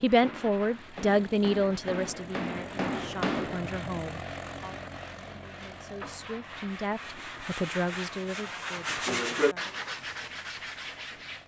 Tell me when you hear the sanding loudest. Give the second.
9 s.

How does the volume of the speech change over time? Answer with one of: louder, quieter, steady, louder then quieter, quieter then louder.
quieter then louder.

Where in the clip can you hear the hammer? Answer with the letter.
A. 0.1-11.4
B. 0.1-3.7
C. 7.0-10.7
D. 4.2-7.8
B.